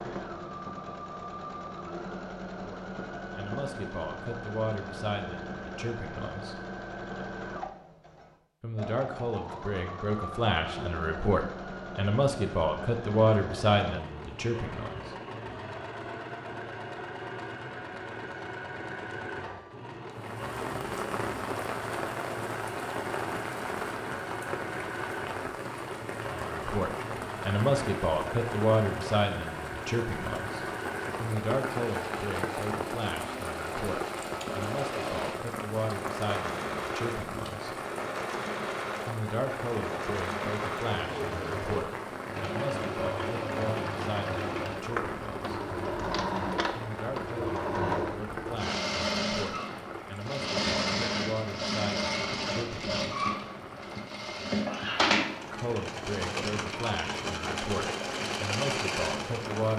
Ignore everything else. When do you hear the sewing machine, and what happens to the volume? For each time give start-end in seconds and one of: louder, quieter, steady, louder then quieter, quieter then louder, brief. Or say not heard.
0.0-59.7 louder.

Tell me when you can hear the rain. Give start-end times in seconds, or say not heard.
20.1-59.7.